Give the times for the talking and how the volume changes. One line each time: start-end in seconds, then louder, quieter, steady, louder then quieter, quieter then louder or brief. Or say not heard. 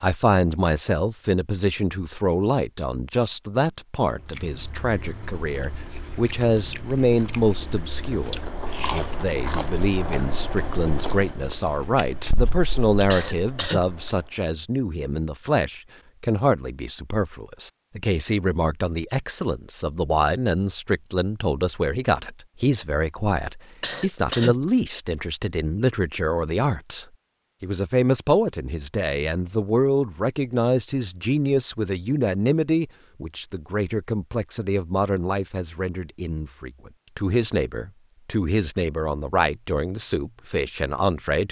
0.0-41.4 steady.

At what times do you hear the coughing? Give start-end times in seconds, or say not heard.
13.1-13.8, 23.8-24.6.